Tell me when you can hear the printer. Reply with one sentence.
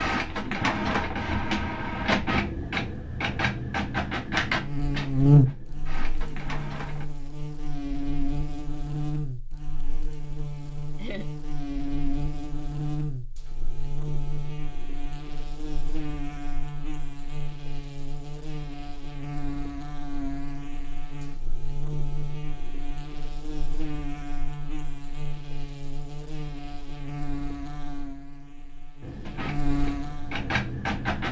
The printer can be heard from 0.0 to 7.0 s and from 29.0 to 31.2 s.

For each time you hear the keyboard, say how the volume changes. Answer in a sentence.
The keyboard can't be heard in this clip.